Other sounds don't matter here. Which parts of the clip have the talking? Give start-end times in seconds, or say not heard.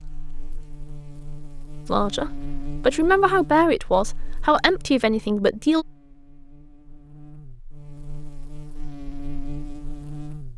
1.9-5.8.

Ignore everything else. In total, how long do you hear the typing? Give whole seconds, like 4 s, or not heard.
not heard.